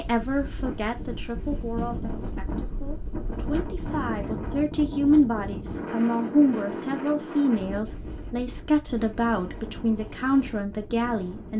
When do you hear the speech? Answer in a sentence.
You can hear the speech from 0.0 to 11.5 s.